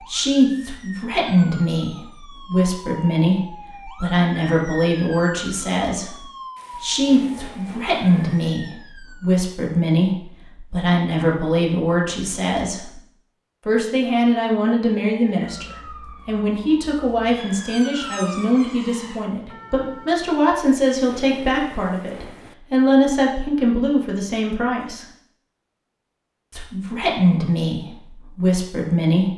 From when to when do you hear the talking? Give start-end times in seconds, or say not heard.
0.1-13.0, 13.7-25.1, 26.5-29.3.